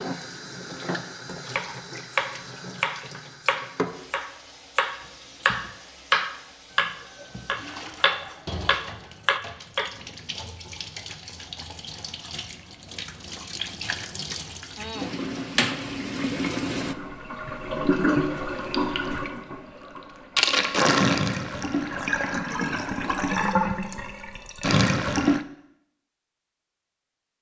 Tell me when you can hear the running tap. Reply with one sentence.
You can hear the running tap from 0.0 to 25.4 s.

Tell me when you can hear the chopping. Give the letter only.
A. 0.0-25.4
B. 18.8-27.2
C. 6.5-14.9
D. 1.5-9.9
D.